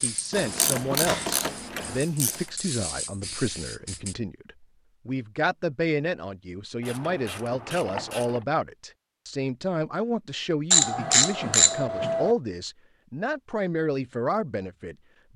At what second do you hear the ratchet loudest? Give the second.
11 s.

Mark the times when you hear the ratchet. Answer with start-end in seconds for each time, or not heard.
0.3-2.4, 6.8-8.4, 10.7-12.3.